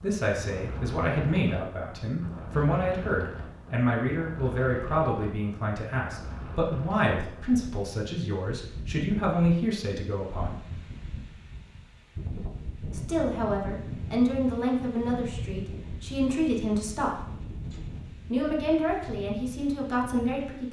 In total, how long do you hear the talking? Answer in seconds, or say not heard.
17 s.